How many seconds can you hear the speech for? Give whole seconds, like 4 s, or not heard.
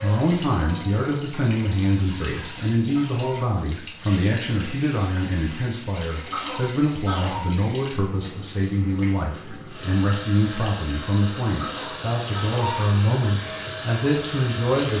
15 s.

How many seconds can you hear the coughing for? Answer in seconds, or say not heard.
4 s.